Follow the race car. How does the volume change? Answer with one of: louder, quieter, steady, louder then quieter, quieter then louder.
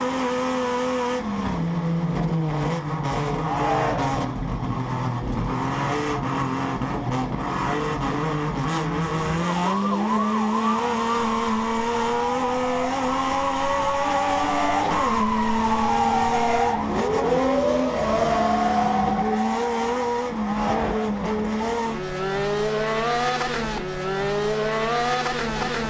steady.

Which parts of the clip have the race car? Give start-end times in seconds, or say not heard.
0.0-25.8.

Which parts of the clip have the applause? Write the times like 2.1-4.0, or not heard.
not heard.